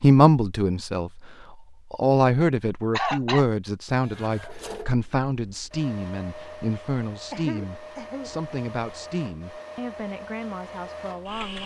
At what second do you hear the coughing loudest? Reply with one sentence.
The volume of the coughing peaks at 3 seconds.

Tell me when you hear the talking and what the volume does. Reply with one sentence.
The talking can be heard from 0.0 to 11.6 s, getting quieter.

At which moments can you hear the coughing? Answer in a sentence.
The coughing can be heard from 2.9 to 3.5 s and from 7.3 to 8.3 s.